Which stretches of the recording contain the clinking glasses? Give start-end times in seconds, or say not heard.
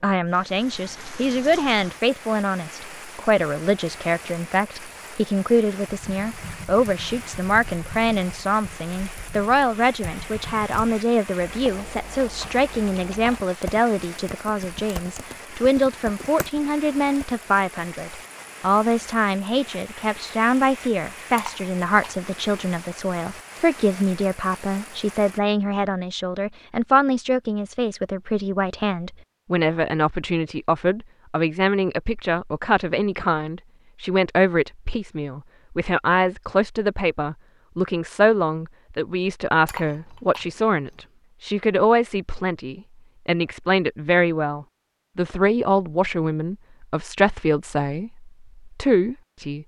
21.4-22.1, 39.6-40.5.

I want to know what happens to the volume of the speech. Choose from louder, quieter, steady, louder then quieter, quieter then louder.
steady.